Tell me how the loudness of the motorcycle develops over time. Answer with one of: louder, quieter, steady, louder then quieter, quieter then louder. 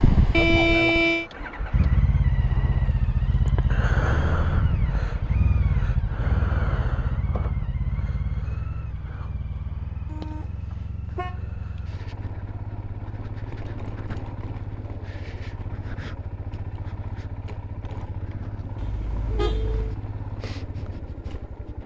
quieter.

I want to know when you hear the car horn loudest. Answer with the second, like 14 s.
1 s.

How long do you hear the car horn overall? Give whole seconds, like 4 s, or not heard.
4 s.